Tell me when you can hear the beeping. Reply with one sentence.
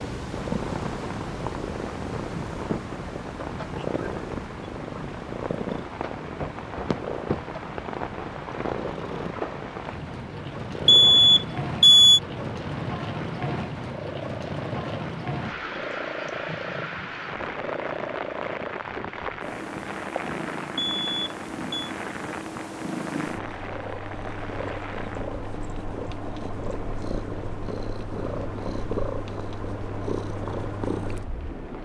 The beeping can be heard from 10.8 to 12.2 s and from 20.8 to 21.9 s.